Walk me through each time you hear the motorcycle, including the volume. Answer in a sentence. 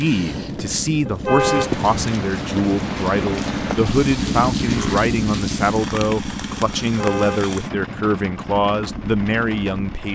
The motorcycle can be heard from 0.2 to 10.1 s, getting louder then quieter.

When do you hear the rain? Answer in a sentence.
You can hear the rain from 0.0 to 10.1 s.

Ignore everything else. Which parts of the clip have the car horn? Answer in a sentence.
You can hear the car horn from 1.1 to 1.7 s and from 6.8 to 7.5 s.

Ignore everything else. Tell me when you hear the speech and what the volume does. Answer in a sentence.
You can hear the speech from 0.0 to 10.1 s, at a steady volume.